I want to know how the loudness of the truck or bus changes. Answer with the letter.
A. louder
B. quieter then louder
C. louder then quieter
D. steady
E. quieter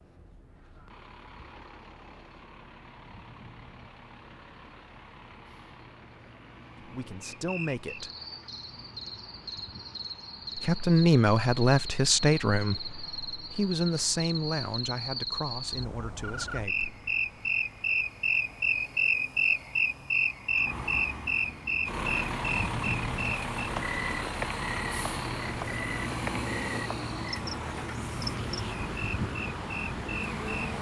A.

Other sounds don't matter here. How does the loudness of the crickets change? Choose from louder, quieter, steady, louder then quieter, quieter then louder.
louder then quieter.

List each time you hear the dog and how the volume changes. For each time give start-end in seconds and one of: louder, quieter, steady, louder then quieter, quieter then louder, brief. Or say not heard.
not heard.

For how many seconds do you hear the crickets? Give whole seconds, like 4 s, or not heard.
23 s.